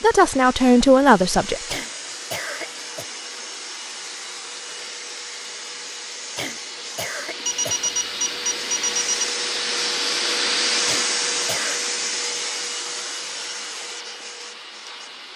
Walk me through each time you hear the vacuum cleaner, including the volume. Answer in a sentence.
You can hear the vacuum cleaner from 0.0 to 15.3 s, getting louder then quieter.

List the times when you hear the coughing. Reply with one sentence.
You can hear the coughing from 1.6 to 3.0 s, from 6.3 to 7.9 s and from 10.8 to 11.8 s.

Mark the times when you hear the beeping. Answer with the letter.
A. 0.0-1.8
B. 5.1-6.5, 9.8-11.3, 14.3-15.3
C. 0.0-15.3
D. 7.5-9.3
D.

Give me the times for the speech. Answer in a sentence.
You can hear the speech from 0.0 to 1.8 s.